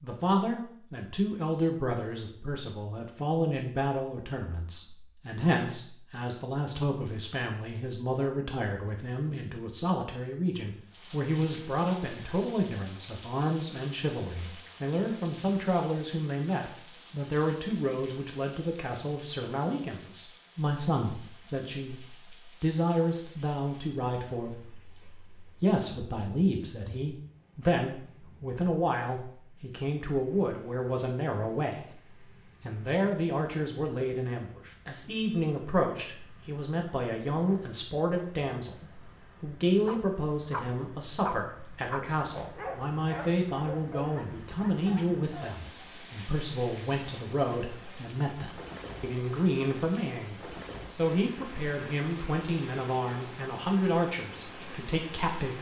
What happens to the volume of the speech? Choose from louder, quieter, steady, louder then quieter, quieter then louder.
steady.